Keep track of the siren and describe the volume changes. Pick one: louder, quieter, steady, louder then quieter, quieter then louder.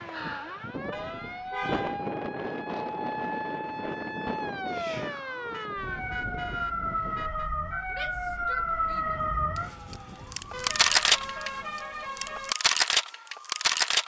louder.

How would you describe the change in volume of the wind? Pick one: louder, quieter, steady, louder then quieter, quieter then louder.
quieter.